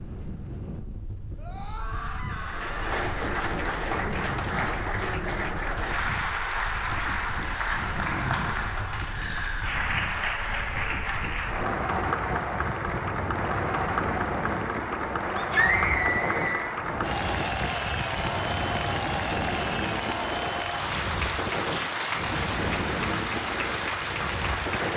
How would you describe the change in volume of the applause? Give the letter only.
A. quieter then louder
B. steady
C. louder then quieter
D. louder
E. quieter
B.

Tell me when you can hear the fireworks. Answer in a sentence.
You can't hear the fireworks here.